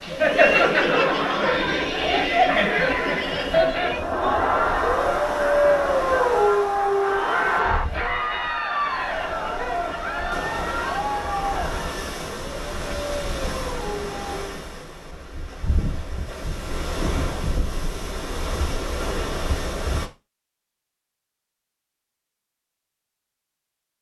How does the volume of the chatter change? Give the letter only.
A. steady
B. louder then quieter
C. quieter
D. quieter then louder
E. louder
C.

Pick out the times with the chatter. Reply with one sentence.
The chatter can be heard from 0.0 to 12.2 s.